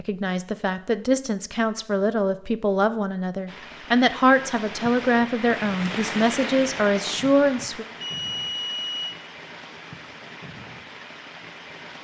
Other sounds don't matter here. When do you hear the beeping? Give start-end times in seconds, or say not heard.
8.0-9.2.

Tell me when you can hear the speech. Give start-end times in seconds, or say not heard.
0.0-7.8.